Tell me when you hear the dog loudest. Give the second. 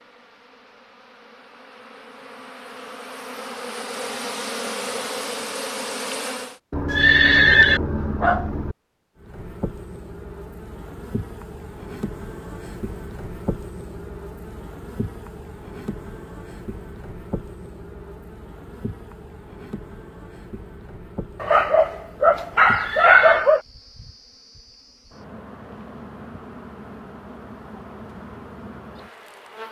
23 s.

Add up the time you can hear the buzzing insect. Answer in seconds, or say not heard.
27 s.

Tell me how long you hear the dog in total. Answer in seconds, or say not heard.
4 s.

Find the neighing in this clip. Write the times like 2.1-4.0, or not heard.
6.8-7.8, 22.8-23.4.